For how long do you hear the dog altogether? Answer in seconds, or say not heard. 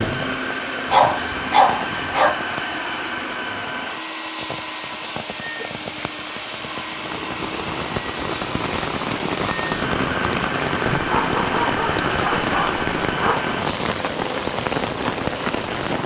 4 s.